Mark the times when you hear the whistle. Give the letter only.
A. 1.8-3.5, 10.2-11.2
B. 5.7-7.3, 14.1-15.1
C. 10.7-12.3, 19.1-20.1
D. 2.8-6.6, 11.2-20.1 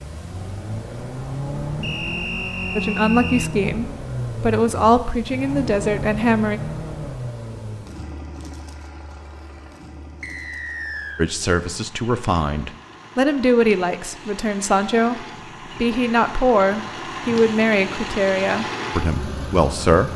A.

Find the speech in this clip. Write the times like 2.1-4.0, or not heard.
2.8-6.6, 11.2-20.1.